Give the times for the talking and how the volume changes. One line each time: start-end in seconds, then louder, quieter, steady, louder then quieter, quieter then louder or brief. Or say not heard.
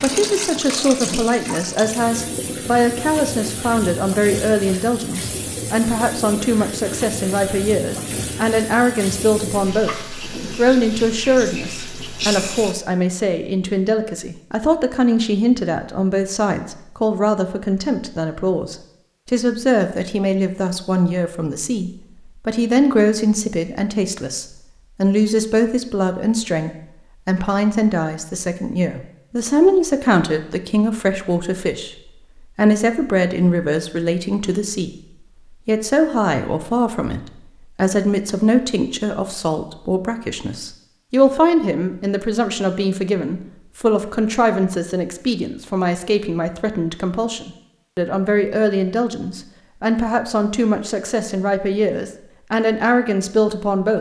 0.0-34.9 steady
35.5-53.9 steady.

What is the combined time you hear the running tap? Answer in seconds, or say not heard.
13 s.